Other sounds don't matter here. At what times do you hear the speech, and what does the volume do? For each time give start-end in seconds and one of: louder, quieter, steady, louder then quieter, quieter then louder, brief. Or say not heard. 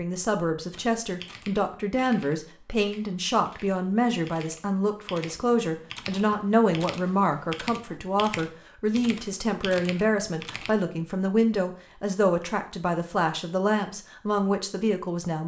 0.0-15.4 steady.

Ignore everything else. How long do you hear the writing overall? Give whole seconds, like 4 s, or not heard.
not heard.